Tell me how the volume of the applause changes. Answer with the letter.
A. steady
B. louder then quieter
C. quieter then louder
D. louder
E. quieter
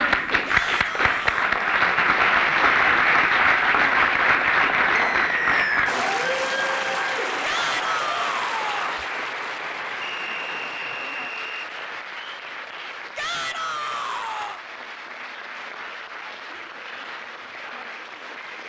E.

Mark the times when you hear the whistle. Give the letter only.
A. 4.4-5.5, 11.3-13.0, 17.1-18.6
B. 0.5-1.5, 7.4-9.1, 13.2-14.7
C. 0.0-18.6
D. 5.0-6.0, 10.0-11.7
D.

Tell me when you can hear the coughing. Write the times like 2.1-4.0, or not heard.
not heard.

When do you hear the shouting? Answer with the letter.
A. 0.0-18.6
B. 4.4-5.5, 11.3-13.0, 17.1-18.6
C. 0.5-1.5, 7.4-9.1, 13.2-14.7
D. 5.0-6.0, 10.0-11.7
C.